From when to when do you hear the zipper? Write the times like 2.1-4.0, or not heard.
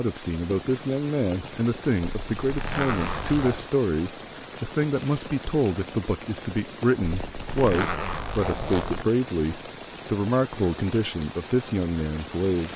2.0-3.7, 7.2-9.1.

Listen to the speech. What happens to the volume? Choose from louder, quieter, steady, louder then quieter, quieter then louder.
steady.